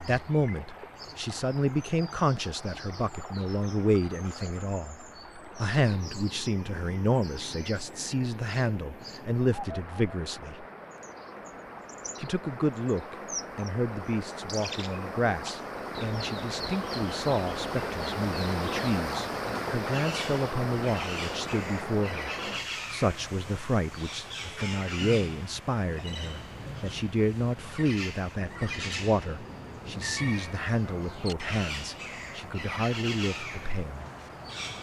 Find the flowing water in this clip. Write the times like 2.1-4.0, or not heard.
0.0-34.7.